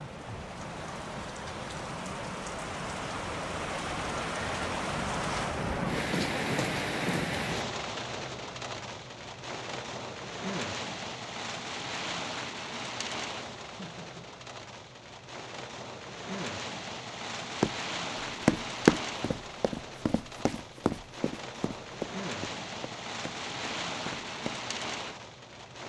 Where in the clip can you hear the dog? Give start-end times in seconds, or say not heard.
not heard.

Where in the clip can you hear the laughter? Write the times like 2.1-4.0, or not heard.
13.8-14.3.